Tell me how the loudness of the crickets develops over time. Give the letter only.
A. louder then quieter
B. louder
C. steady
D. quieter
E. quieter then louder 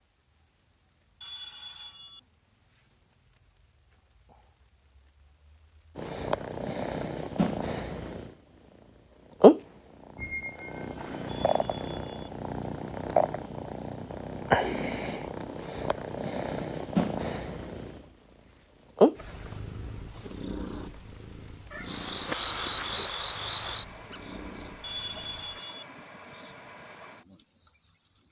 B.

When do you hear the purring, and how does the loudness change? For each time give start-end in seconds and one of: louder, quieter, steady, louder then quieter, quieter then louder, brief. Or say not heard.
6.0-8.3 brief
9.4-25.6 louder then quieter.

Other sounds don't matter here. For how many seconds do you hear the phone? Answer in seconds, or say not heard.
3 s.